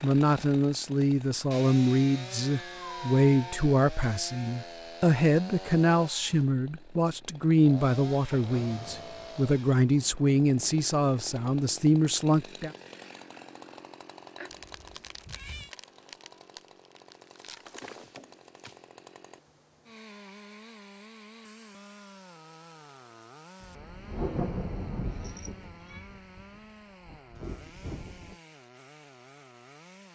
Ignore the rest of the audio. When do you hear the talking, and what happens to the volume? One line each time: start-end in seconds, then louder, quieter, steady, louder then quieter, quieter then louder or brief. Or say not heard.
0.0-12.7 steady.